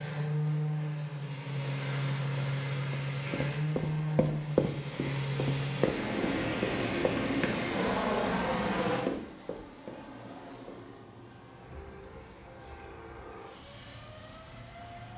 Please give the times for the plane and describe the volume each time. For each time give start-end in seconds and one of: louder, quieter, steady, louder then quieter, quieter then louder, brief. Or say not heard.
0.0-15.1 quieter.